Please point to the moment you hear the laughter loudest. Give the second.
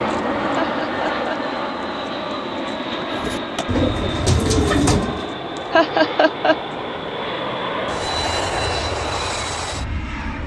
6 s.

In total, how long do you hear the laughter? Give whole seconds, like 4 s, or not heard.
2 s.